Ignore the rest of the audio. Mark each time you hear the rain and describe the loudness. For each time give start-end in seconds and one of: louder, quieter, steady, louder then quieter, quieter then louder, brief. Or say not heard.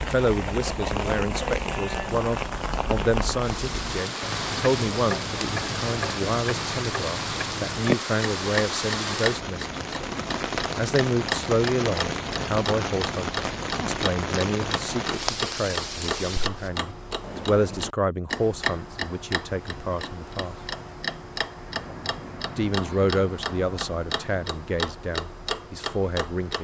0.0-16.7 steady.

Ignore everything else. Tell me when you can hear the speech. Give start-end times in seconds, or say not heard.
0.0-9.8, 10.8-20.6, 22.6-26.5.